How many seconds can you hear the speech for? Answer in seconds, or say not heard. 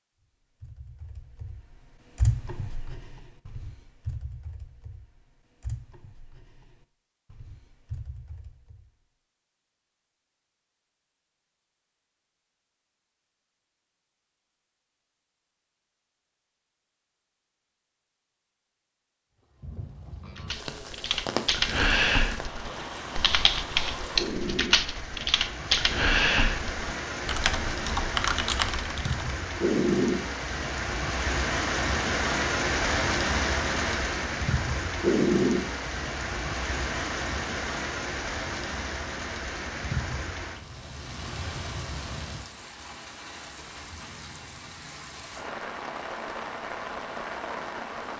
not heard.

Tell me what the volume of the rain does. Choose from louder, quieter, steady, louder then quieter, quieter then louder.
louder then quieter.